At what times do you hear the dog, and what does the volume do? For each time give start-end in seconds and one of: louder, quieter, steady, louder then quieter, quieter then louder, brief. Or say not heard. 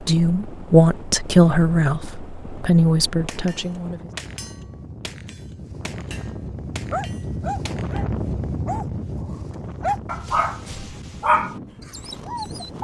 6.8-12.7 louder.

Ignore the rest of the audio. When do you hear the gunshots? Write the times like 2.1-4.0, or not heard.
3.2-8.0.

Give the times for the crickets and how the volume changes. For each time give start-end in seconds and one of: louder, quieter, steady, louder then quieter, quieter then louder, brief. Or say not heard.
not heard.